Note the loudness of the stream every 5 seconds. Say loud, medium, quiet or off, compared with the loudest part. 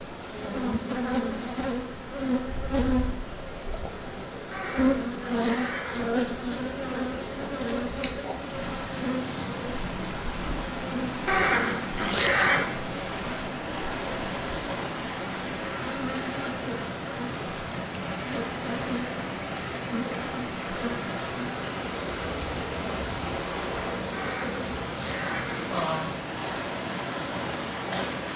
medium, medium, loud, loud, loud, loud.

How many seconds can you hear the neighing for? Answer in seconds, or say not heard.
5 s.